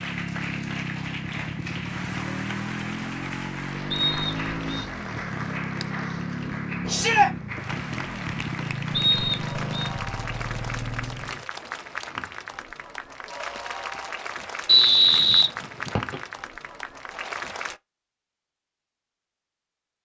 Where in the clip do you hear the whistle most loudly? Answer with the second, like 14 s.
15 s.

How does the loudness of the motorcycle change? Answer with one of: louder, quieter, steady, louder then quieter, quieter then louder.
steady.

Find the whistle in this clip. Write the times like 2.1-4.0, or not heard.
3.9-4.8, 8.9-9.9, 14.7-16.1.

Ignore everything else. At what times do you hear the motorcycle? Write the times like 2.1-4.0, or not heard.
0.0-11.4.